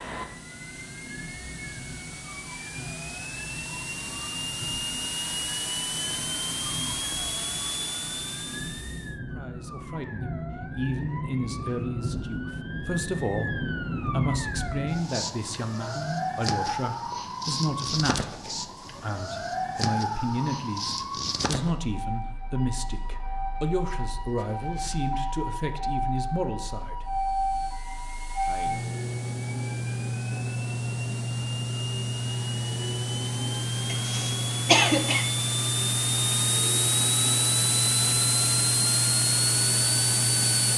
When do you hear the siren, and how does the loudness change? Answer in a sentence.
You can hear the siren from 0.0 to 40.7 s, getting louder.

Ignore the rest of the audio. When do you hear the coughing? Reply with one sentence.
You can hear the coughing from 33.9 to 35.2 s.